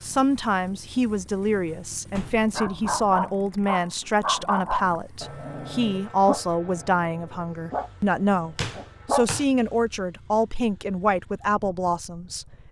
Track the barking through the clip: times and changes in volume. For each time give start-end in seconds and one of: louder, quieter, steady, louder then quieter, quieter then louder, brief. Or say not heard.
2.5-9.2 quieter then louder.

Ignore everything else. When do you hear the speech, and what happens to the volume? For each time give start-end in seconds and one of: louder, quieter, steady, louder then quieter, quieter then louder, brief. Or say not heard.
0.0-12.6 steady.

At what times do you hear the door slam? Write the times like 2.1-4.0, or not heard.
2.1-2.6, 8.6-9.4.